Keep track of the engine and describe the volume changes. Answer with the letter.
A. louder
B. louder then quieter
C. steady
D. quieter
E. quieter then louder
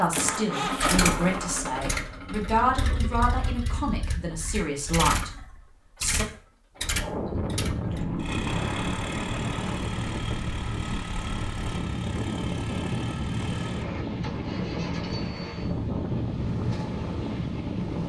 D.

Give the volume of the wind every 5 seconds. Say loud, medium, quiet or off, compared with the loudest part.
off, loud, loud, loud.